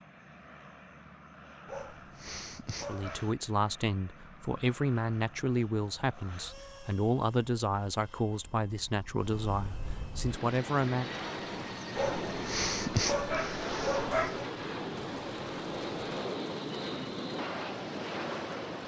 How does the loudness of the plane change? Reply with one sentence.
The loudness of the plane goes up.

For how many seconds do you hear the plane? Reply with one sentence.
You can hear the plane for 19 seconds altogether.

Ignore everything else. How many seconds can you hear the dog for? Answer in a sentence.
The dog can be heard for 4 seconds in total.